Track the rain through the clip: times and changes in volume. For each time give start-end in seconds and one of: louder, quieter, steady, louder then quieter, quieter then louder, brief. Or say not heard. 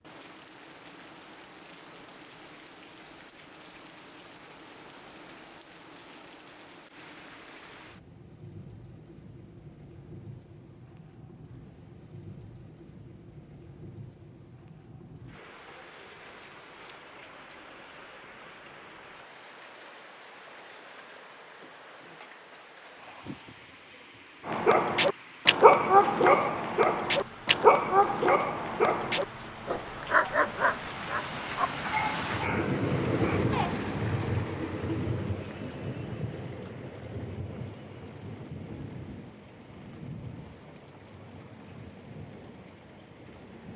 0.0-43.7 louder then quieter.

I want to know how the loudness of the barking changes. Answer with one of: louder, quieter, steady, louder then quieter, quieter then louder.
quieter.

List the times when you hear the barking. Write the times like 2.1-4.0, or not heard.
24.4-33.9.